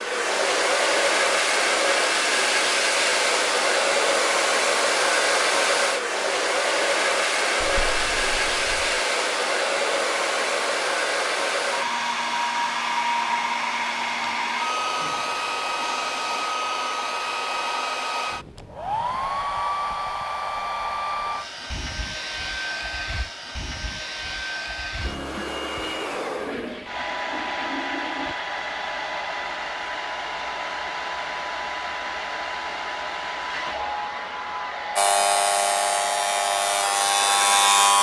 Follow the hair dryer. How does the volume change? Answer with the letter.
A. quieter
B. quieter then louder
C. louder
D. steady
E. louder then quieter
A.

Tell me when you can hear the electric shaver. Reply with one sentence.
The electric shaver can be heard from 35.0 to 37.9 s.